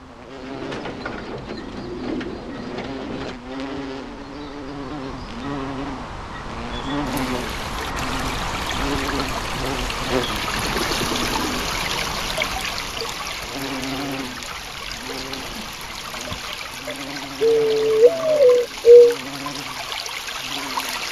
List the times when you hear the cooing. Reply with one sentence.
You can hear the cooing from 0.4 to 3.4 s, from 10.6 to 12.2 s and from 17.4 to 19.1 s.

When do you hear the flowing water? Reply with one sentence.
The flowing water can be heard from 7.0 to 21.0 s.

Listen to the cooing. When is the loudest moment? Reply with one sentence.
The volume of the cooing peaks at 19 seconds.